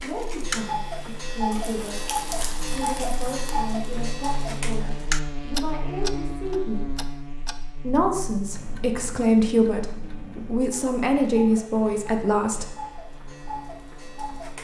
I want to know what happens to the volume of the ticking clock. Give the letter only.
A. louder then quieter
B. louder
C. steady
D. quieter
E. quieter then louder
D.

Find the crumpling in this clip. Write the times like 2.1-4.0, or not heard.
1.5-3.5.